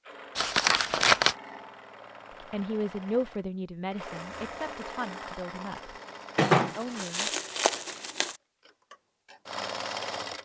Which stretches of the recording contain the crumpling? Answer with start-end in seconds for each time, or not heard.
0.3-1.4, 6.3-8.3.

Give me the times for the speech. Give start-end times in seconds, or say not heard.
2.4-7.3.